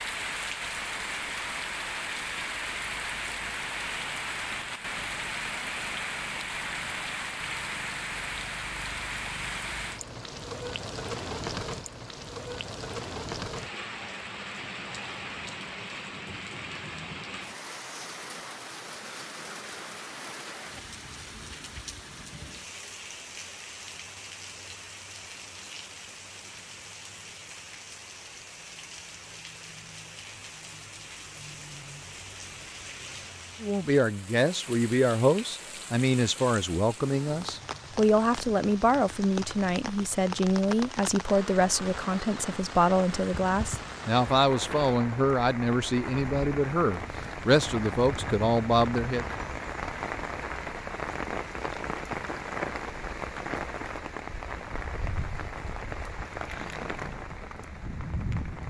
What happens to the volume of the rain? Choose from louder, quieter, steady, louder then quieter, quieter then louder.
quieter then louder.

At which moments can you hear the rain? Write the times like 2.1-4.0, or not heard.
0.0-58.6.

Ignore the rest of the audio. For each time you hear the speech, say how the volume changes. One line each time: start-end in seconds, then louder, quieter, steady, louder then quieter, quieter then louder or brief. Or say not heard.
33.6-49.2 steady.